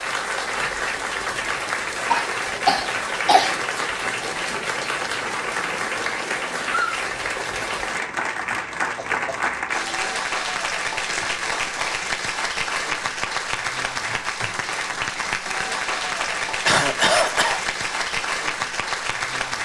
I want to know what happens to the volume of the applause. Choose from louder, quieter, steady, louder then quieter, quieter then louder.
steady.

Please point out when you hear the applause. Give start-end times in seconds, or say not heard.
0.0-19.6.